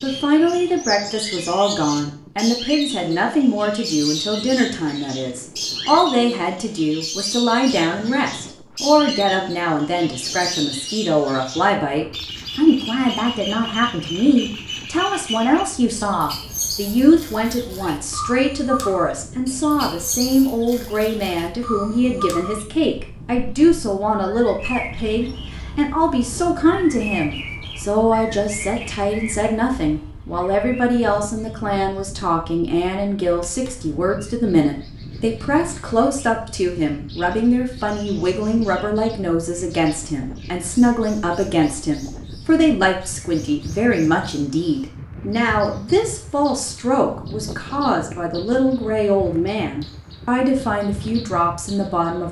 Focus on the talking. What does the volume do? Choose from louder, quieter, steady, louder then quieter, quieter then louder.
steady.